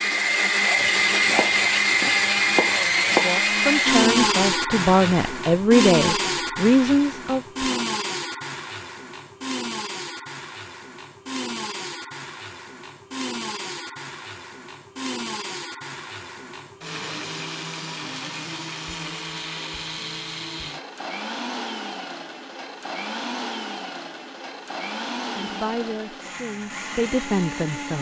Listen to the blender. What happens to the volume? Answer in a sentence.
The volume of the blender goes down.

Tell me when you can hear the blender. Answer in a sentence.
You can hear the blender from 0.0 to 27.9 s.